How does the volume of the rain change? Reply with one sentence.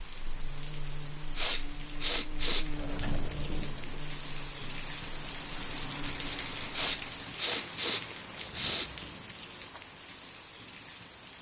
The volume of the rain goes up, then down.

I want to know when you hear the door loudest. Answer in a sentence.
The loudest moment of the door is at 3 seconds.